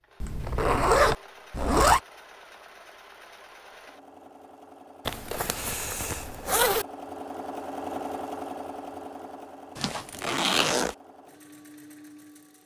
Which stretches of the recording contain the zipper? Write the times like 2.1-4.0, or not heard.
0.2-2.0, 5.0-6.8, 9.8-10.9.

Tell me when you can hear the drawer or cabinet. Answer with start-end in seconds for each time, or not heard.
not heard.